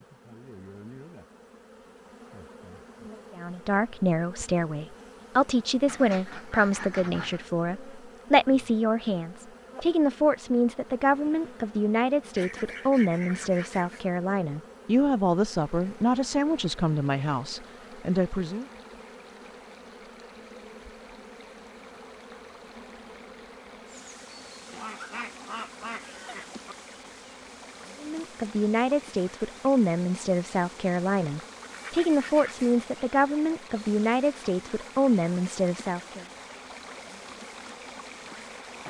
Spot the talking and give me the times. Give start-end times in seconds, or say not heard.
3.4-18.6, 28.0-36.2.